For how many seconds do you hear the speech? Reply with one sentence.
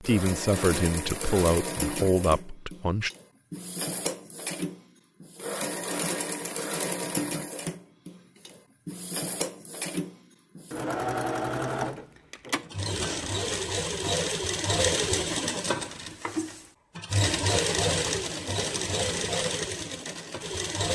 The speech can be heard for 3 seconds in total.